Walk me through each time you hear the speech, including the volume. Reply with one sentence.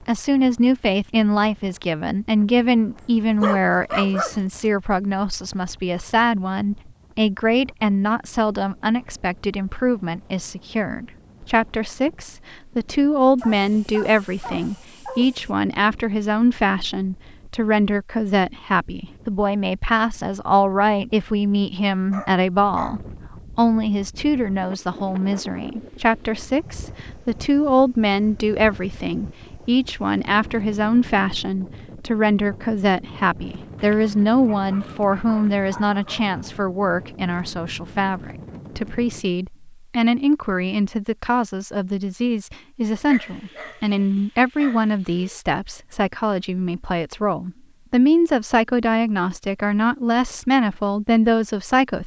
The speech can be heard from 0.1 to 52.0 s, at a steady volume.